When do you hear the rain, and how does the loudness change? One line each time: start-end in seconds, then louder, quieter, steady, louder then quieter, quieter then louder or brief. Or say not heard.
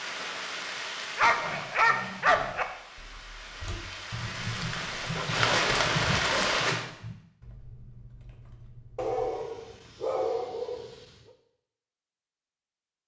0.0-6.8 quieter then louder.